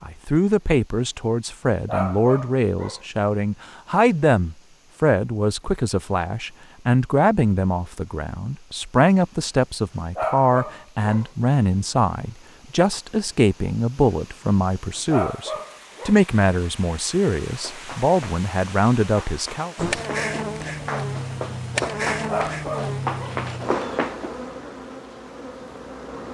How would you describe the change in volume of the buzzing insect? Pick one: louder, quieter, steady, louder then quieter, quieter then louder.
quieter.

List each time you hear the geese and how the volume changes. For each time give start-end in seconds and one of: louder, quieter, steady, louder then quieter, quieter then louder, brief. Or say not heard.
not heard.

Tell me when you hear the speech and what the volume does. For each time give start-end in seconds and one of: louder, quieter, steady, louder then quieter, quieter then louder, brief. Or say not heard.
0.0-19.8 steady.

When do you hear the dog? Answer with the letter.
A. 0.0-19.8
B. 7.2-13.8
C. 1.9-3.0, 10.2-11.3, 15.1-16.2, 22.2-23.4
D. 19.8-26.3
C.